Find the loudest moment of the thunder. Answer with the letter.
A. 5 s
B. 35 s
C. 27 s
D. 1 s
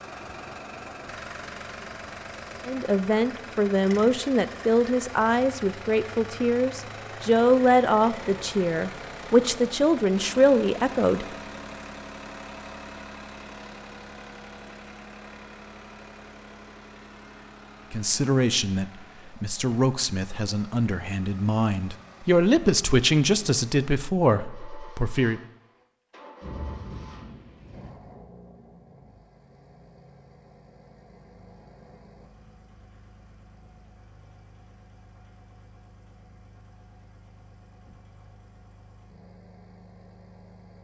C.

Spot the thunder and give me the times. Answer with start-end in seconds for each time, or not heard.
26.4-27.9.